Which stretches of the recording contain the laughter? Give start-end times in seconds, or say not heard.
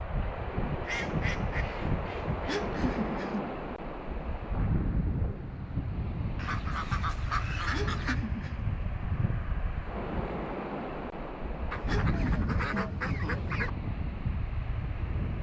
2.5-3.5, 7.7-8.7, 11.8-13.4.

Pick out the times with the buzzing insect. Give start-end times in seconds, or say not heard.
not heard.